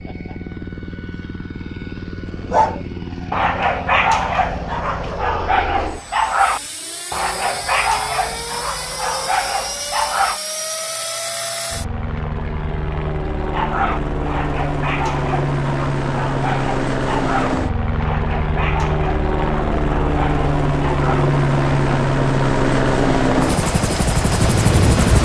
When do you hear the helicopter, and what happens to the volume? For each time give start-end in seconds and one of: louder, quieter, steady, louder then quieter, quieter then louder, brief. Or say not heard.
0.0-25.2 louder.